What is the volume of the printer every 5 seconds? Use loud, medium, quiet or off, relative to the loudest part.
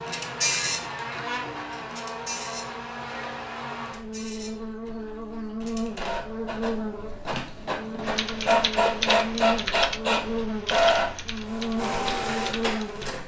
medium, loud, loud.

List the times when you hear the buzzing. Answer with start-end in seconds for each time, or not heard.
0.0-13.2.